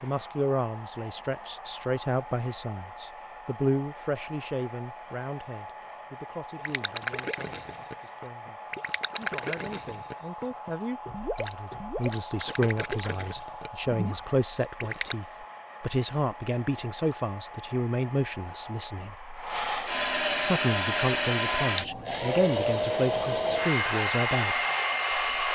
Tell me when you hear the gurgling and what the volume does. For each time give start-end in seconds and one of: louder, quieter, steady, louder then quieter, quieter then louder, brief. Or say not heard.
6.5-15.2 steady.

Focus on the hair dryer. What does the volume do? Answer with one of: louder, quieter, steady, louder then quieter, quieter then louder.
louder.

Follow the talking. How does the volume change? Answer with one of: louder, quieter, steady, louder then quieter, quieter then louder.
quieter then louder.